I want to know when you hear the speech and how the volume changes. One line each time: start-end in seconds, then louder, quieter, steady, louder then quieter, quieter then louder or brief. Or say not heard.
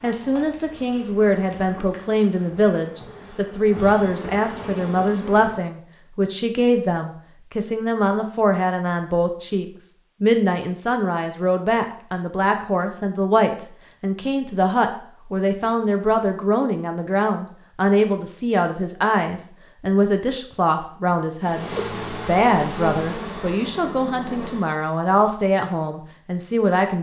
0.0-26.9 steady.